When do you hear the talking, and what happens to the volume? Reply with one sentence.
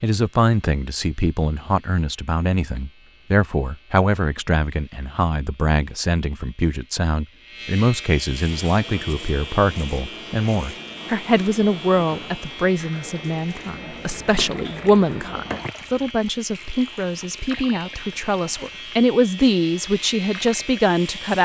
You can hear the talking from 0.0 to 21.4 s, at a steady volume.